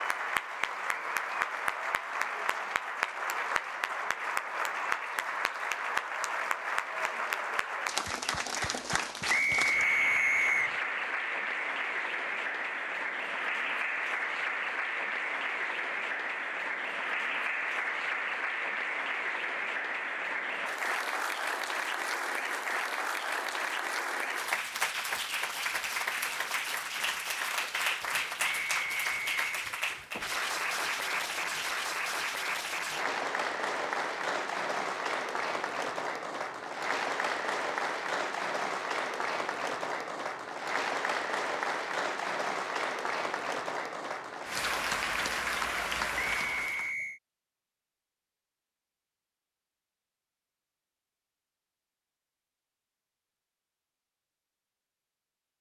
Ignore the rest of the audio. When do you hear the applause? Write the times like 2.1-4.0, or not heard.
0.0-47.0.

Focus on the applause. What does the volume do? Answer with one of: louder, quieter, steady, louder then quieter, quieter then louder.
steady.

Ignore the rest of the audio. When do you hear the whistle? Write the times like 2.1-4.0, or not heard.
9.2-10.8, 28.4-29.6, 46.2-47.2.